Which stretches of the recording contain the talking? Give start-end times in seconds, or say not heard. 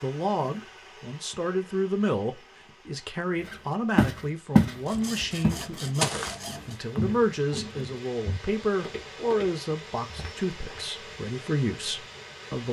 0.0-12.6.